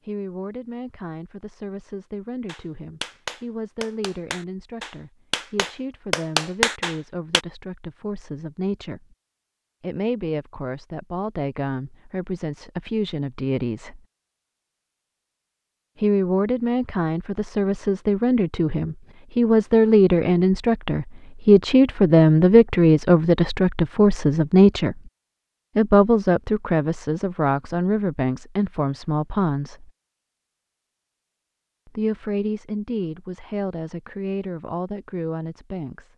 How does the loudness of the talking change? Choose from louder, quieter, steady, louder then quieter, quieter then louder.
louder then quieter.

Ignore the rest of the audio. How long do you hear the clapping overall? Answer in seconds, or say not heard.
5 s.